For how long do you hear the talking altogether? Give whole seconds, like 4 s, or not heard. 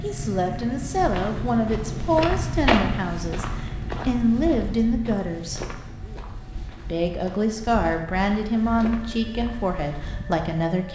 10 s.